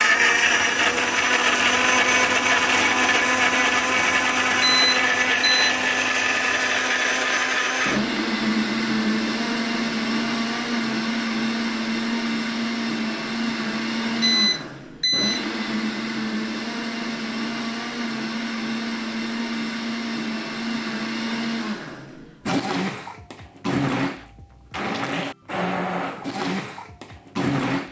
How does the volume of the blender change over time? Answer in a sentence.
The loudness of the blender goes down.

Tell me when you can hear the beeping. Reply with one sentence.
You can hear the beeping from 4.6 to 5.7 s and from 14.2 to 15.4 s.